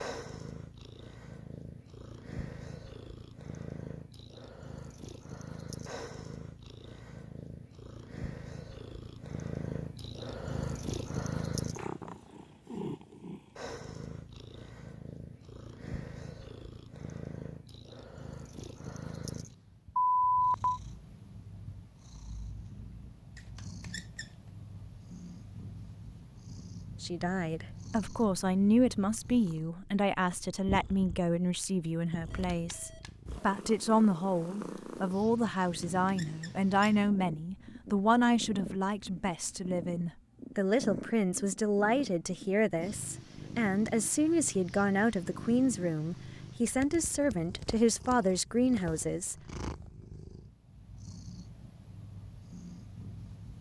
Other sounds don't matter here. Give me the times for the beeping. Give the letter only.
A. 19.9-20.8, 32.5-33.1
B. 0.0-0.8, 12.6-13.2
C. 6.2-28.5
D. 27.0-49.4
A.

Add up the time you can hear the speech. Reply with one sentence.
You can hear the speech for 22 seconds altogether.